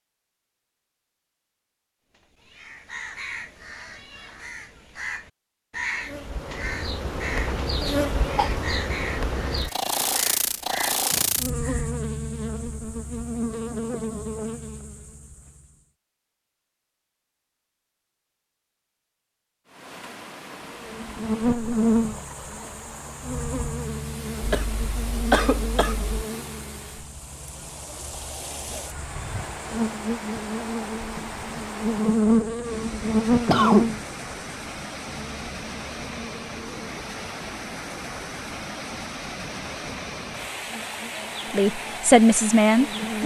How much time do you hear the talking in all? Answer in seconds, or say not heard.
2 s.